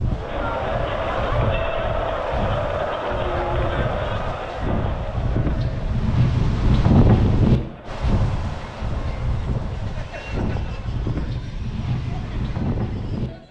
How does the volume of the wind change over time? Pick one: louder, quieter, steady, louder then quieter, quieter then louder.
louder then quieter.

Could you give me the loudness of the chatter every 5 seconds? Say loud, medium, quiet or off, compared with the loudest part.
loud, quiet, quiet.